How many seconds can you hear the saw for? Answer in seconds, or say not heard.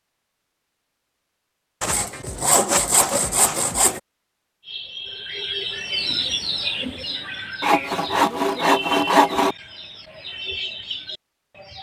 4 s.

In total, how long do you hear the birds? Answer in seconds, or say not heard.
7 s.